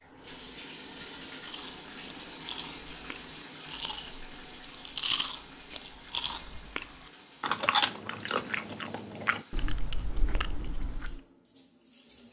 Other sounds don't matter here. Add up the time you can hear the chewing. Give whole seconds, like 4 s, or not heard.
10 s.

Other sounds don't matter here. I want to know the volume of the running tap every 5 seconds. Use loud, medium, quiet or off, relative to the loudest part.
loud, medium, quiet.